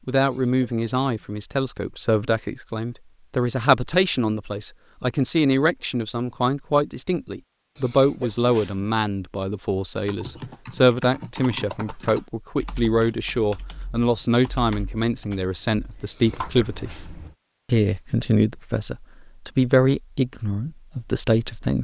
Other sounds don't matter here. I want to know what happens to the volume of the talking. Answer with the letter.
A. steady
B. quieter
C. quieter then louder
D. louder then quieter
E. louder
A.